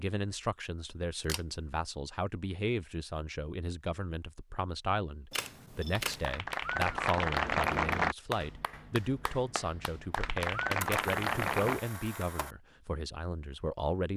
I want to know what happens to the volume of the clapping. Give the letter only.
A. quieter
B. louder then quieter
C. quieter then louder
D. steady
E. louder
C.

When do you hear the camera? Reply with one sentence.
You can hear the camera from 1.2 to 1.6 s, from 5.3 to 6.3 s and from 10.8 to 12.6 s.